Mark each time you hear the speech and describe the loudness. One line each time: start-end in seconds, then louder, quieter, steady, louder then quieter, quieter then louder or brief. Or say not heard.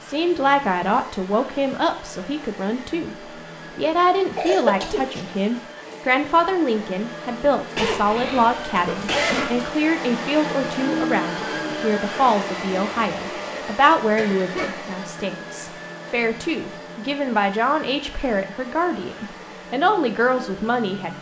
0.0-21.1 steady.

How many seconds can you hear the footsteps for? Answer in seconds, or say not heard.
not heard.